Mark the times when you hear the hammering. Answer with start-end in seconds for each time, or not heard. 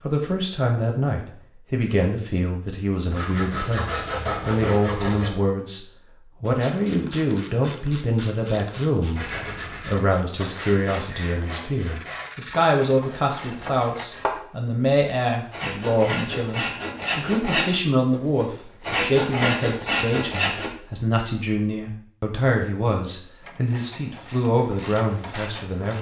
not heard.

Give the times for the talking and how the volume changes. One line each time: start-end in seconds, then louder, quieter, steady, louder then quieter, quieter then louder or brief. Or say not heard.
0.0-25.9 steady.